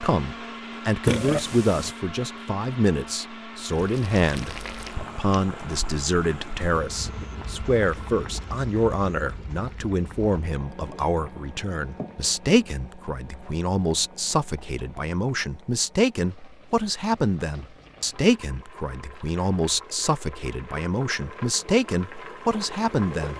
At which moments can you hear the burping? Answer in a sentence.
You can hear the burping from 1.0 to 1.9 s.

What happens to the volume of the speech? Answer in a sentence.
The volume of the speech stays about the same.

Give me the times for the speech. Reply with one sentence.
The speech can be heard from 0.0 to 23.3 s.